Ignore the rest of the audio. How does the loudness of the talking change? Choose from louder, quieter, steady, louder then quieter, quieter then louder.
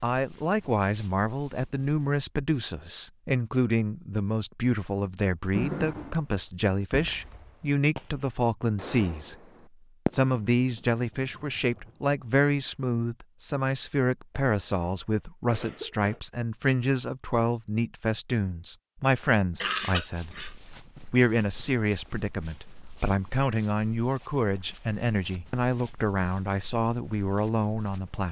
steady.